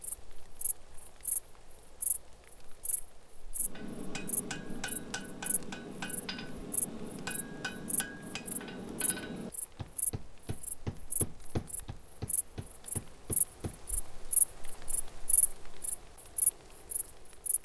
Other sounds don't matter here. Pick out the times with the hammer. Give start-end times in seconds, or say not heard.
3.6-13.8.